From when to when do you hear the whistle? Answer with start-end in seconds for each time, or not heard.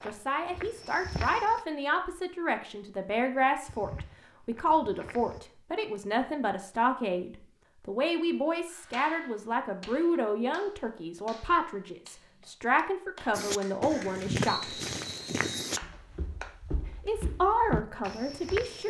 14.4-15.8.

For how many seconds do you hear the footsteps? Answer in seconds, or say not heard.
9 s.